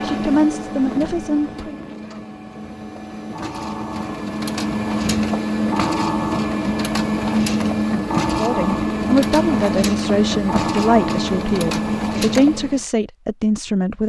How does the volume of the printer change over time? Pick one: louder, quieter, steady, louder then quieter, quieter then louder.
louder.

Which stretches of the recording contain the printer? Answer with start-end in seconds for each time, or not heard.
0.0-12.8.